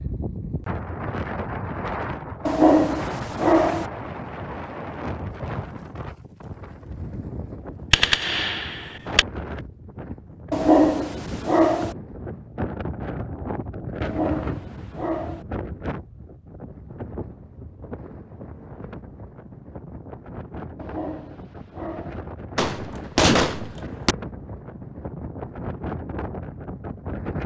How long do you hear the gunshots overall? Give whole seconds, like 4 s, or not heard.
3 s.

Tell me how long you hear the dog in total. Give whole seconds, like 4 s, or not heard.
6 s.